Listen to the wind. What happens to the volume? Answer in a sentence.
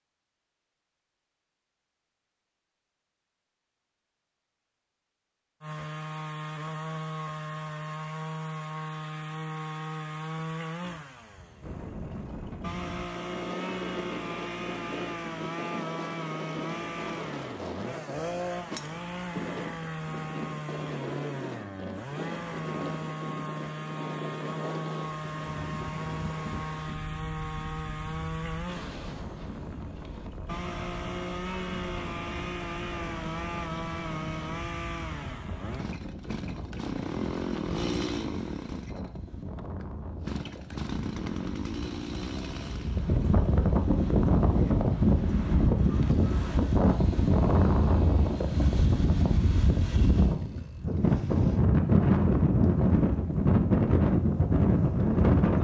The volume of the wind goes up.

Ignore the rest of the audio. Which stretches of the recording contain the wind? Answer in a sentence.
The wind can be heard from 11.6 to 55.5 s.